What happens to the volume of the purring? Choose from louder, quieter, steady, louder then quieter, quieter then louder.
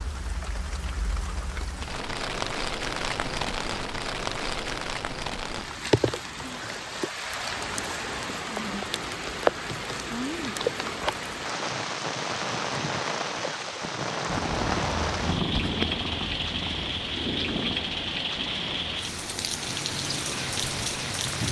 quieter.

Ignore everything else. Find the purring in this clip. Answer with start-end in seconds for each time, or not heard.
14.2-21.4.